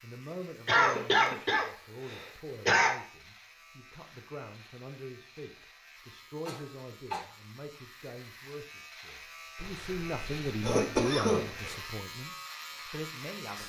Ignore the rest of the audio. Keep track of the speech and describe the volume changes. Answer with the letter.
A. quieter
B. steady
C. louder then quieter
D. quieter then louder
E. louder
E.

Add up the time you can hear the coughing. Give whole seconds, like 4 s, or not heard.
5 s.